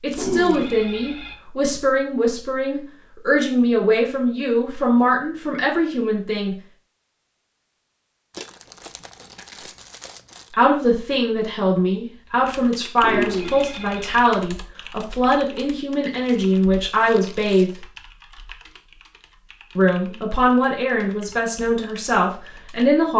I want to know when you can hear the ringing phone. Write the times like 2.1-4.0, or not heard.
0.1-1.4, 13.0-14.2.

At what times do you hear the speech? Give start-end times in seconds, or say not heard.
0.0-6.5, 10.5-17.9, 19.8-23.1.